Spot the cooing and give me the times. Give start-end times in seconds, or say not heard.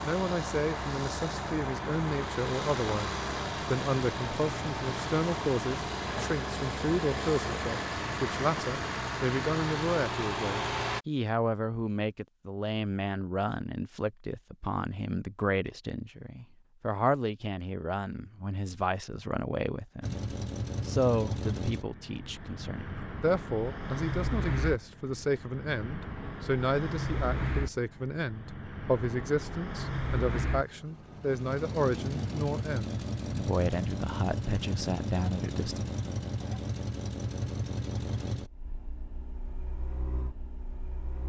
not heard.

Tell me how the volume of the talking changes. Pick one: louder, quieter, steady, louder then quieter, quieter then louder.
steady.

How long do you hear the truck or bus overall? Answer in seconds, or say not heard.
32 s.